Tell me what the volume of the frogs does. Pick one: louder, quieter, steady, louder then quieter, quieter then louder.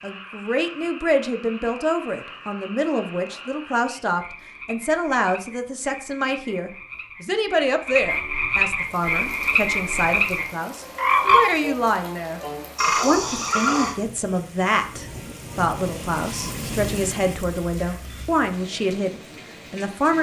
louder.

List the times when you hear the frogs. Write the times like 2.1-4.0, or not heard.
0.0-13.9.